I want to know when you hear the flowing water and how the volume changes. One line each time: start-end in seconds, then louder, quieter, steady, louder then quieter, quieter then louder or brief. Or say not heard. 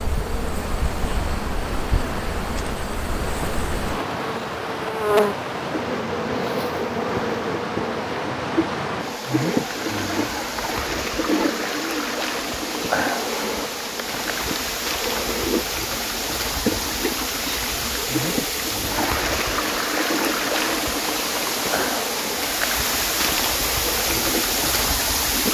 0.0-25.4 louder.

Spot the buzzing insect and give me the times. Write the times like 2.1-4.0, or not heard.
0.0-25.4.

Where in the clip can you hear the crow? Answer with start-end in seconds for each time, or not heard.
not heard.